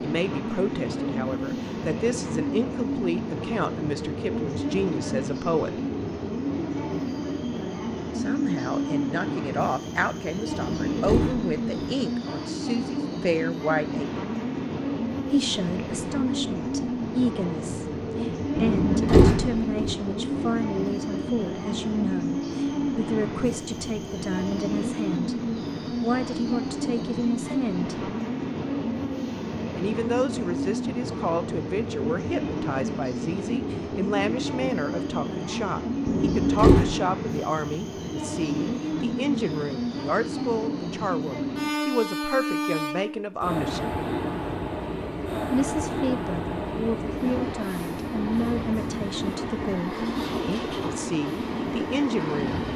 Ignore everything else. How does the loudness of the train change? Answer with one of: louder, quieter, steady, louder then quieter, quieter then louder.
steady.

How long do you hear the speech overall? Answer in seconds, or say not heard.
46 s.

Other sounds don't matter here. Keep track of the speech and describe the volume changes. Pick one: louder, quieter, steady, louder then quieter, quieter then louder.
steady.